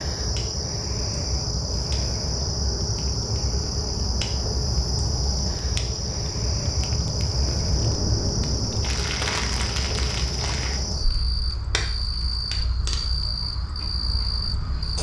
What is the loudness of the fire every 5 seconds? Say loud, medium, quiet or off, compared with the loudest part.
medium, loud, medium.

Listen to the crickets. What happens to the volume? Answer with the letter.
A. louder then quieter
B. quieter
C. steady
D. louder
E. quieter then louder
C.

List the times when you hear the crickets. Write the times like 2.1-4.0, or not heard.
0.0-14.9.